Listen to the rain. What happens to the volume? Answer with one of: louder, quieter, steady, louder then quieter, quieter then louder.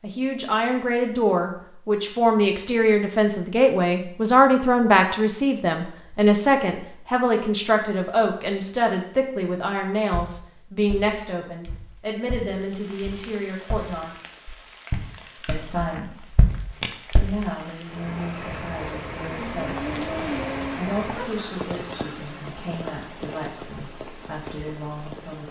louder then quieter.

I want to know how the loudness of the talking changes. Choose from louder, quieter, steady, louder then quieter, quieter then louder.
quieter.